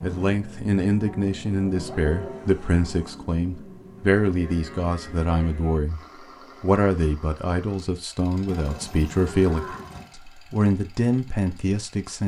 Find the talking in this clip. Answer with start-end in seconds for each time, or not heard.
0.0-6.0, 6.6-12.2.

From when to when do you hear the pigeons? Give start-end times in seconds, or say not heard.
not heard.